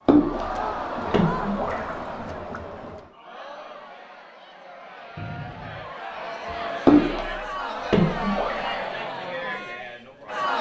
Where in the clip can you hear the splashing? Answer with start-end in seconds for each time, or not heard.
0.1-2.6, 6.8-8.8.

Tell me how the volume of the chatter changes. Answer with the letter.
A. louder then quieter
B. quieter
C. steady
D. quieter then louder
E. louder
D.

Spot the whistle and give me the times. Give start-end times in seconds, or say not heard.
5.2-6.0.